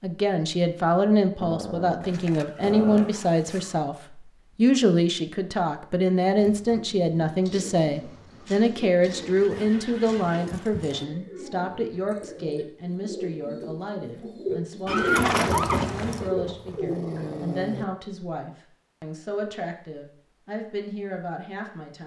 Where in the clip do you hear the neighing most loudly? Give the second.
15 s.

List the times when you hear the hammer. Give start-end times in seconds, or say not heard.
not heard.